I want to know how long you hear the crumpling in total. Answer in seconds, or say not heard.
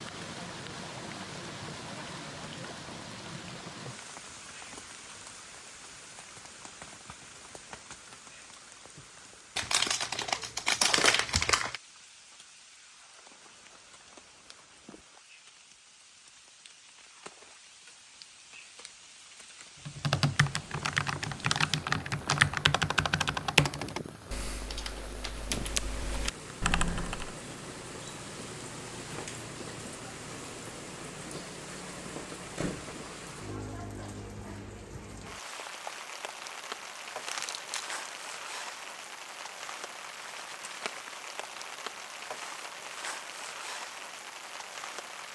3 s.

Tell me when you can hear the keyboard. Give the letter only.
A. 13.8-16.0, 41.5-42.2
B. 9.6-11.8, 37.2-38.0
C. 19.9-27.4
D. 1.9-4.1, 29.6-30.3
C.